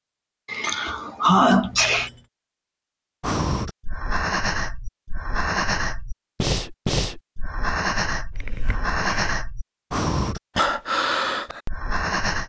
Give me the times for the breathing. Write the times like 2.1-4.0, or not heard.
3.2-12.4.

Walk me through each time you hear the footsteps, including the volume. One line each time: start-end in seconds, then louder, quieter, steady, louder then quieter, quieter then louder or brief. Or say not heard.
not heard.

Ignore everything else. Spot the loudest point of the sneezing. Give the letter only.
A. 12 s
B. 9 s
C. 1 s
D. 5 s
C.